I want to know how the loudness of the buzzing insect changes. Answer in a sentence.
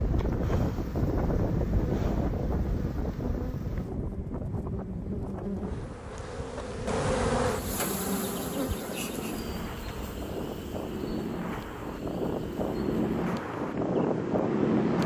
The volume of the buzzing insect goes up, then down.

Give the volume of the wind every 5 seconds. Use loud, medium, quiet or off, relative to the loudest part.
loud, medium, loud.